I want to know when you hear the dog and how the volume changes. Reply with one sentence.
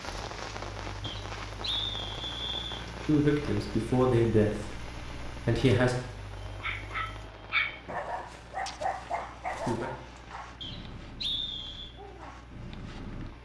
You can hear the dog from 6.3 to 13.3 s, getting quieter.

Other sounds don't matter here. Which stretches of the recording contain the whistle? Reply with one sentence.
The whistle can be heard from 1.0 to 2.9 s and from 10.6 to 11.9 s.